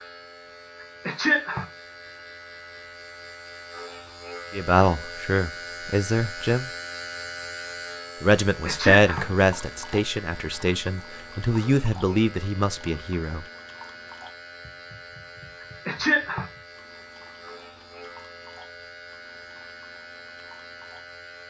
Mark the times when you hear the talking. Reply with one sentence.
The talking can be heard from 4.5 to 6.7 s and from 8.2 to 13.4 s.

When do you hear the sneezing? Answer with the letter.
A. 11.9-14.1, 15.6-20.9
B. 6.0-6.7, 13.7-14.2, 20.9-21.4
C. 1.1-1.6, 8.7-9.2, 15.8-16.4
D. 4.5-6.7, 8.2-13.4
C.